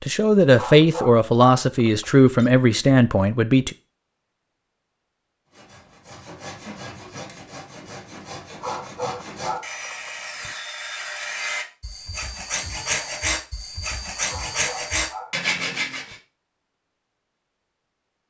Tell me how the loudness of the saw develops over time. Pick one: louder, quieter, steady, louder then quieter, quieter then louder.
louder.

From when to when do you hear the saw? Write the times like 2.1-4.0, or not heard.
5.5-16.1.